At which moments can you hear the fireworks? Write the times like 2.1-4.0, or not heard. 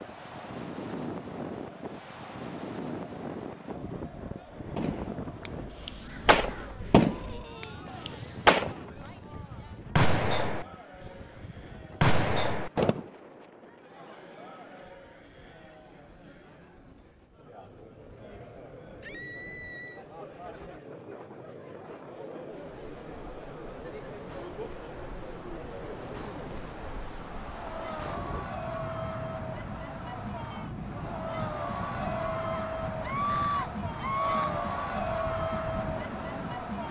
4.8-13.1.